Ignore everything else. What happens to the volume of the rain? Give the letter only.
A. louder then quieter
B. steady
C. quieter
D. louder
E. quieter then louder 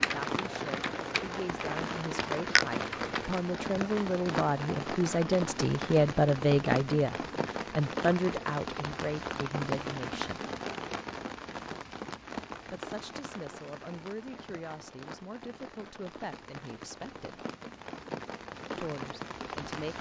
C.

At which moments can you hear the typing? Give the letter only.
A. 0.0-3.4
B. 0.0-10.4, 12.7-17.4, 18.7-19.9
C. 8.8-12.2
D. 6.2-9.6
A.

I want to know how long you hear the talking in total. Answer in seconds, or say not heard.
16 s.